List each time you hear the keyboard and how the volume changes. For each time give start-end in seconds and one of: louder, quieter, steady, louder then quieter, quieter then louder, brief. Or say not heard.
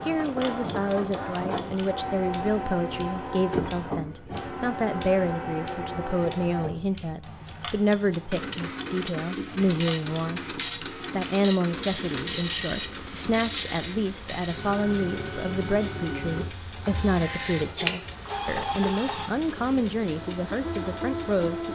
not heard.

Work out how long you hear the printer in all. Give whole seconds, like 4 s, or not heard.
22 s.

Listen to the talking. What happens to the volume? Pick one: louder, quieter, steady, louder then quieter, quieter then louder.
steady.